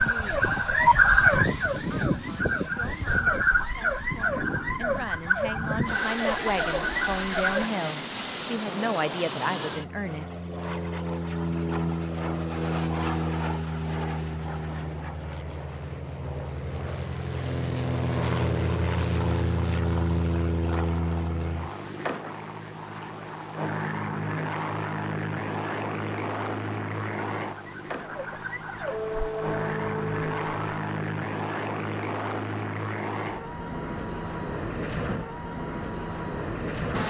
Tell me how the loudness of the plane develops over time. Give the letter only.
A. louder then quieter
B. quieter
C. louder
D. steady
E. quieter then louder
D.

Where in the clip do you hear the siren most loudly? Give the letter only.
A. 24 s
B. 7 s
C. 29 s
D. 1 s
D.